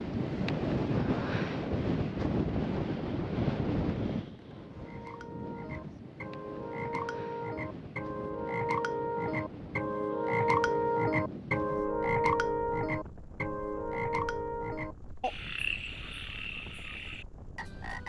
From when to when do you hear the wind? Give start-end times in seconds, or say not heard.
0.0-18.0.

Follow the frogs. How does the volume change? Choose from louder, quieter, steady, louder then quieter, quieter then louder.
louder then quieter.